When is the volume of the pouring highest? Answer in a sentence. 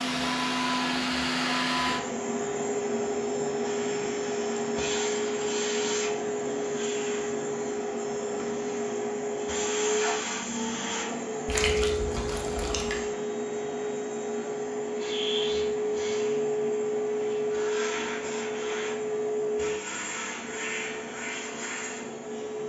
The volume of the pouring peaks at 12 seconds.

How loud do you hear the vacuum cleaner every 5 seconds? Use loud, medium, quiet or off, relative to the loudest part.
loud, loud, loud, loud, medium.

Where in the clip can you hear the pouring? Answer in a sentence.
You can hear the pouring from 11.4 to 13.0 s.